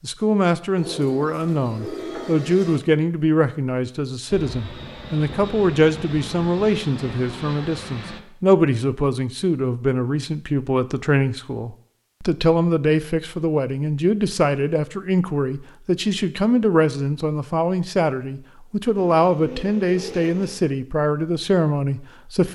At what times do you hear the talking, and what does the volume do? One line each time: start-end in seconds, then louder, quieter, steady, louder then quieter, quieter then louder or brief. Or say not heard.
0.0-22.5 steady.